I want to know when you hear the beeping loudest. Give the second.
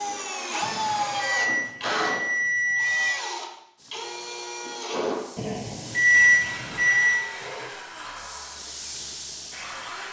6 s.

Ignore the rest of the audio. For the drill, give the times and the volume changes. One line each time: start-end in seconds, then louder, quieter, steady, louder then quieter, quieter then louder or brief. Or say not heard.
0.0-10.0 quieter.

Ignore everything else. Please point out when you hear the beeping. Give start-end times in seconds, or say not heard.
0.6-3.1, 5.3-7.2.